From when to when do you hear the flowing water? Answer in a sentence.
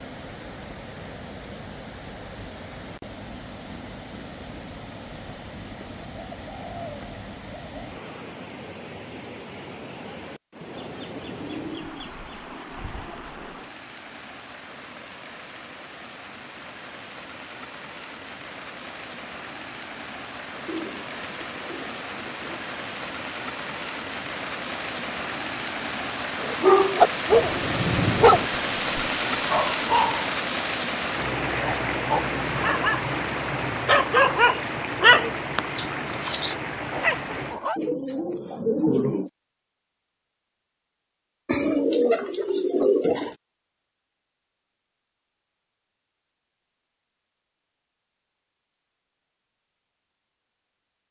The flowing water can be heard from 0.0 to 37.6 s.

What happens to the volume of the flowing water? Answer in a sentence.
The loudness of the flowing water goes up.